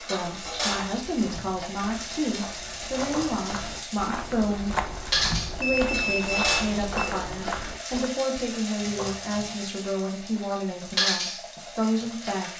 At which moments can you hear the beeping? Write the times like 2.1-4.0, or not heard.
5.6-7.2.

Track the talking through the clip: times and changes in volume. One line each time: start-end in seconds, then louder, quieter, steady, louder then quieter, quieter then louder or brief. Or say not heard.
0.0-4.8 steady
5.5-12.5 steady.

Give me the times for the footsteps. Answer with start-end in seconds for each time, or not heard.
0.2-8.1.